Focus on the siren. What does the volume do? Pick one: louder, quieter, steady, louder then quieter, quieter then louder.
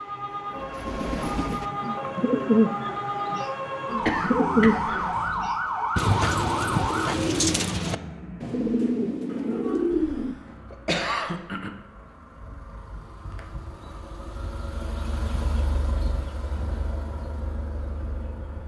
louder.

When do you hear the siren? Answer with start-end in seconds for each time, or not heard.
0.0-7.2.